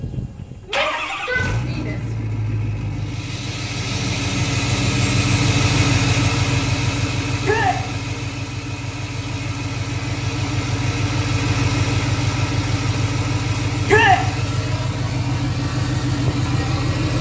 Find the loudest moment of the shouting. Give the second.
14 s.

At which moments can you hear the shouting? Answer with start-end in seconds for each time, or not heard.
0.7-2.1, 7.4-7.8, 13.8-14.2.